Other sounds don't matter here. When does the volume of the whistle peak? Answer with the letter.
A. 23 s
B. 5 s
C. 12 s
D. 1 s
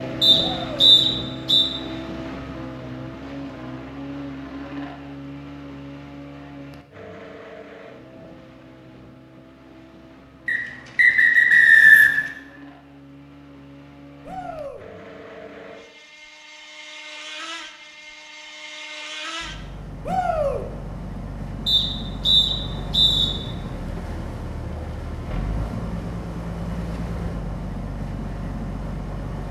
C.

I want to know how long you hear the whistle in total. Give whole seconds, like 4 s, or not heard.
5 s.